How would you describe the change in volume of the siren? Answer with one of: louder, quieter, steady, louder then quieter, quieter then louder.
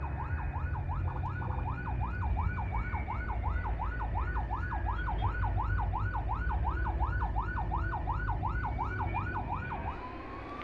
steady.